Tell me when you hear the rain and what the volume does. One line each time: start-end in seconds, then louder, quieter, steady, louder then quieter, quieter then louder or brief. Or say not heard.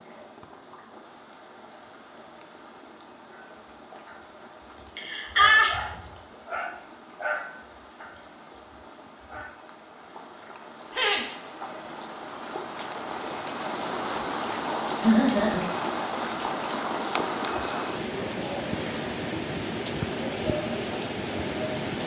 0.0-22.0 louder.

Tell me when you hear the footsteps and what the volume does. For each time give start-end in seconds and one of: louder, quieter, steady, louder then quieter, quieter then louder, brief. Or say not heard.
not heard.